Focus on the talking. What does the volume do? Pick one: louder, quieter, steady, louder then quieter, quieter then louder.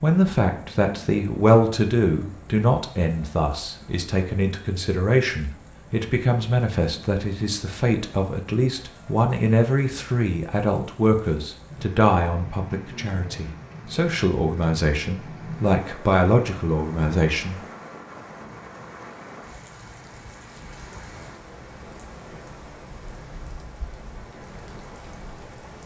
steady.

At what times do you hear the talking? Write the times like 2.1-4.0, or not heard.
0.0-17.6.